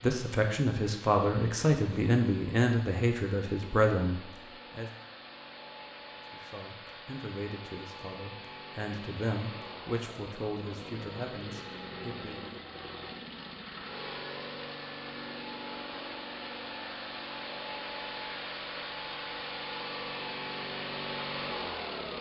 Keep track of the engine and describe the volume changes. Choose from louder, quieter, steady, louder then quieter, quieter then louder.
louder.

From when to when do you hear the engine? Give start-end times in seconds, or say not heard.
0.0-22.1.